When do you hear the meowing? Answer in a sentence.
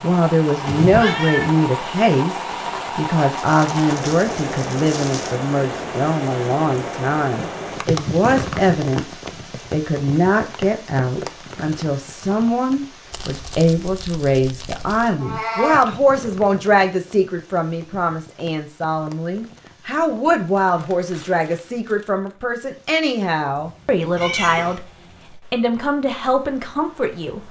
The meowing can be heard from 0.6 to 1.5 s, from 15.2 to 15.8 s and from 24.1 to 24.8 s.